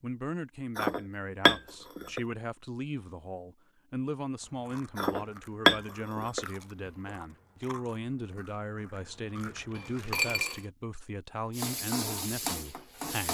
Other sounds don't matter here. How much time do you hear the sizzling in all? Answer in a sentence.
You can hear the sizzling for 2 seconds altogether.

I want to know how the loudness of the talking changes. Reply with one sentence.
The volume of the talking stays about the same.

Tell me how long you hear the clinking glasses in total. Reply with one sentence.
The clinking glasses can be heard for 4 seconds in total.